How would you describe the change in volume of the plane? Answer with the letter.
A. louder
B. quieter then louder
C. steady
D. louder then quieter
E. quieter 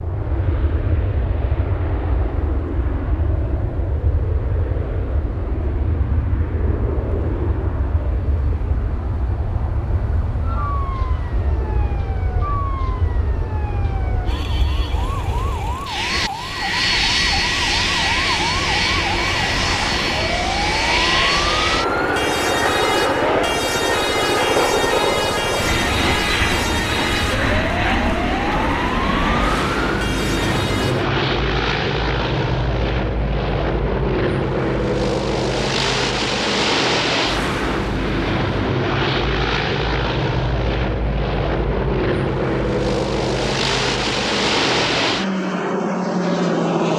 A.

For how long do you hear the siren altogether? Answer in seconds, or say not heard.
21 s.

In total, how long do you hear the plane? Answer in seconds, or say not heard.
47 s.